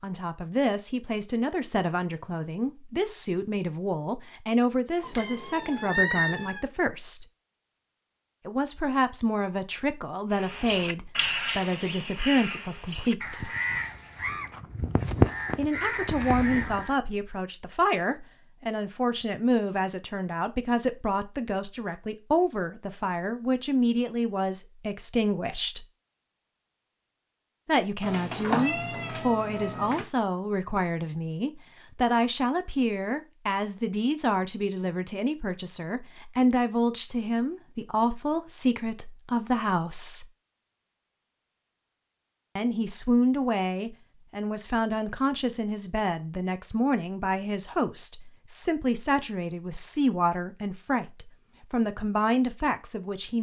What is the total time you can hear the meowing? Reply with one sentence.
You can hear the meowing for 4 seconds altogether.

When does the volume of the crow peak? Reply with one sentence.
The volume of the crow peaks at 15 seconds.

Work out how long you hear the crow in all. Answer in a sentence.
The crow can be heard for 7 seconds in total.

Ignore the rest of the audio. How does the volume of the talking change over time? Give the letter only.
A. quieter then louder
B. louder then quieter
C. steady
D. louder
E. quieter
C.